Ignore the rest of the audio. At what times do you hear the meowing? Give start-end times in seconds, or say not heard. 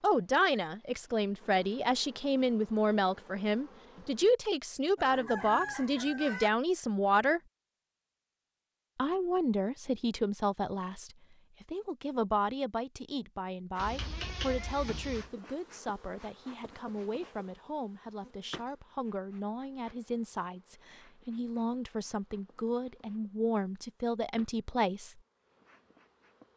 13.8-15.3.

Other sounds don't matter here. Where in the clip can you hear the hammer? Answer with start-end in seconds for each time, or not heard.
not heard.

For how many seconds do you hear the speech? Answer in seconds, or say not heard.
24 s.